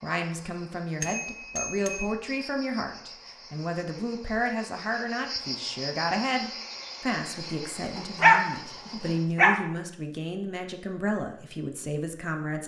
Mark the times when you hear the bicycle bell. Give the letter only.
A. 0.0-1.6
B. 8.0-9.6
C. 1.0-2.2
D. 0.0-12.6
C.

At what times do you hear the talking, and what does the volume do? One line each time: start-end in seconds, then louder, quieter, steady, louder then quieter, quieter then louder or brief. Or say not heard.
0.0-12.6 steady.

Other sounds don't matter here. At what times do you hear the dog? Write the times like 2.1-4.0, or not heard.
8.0-9.6.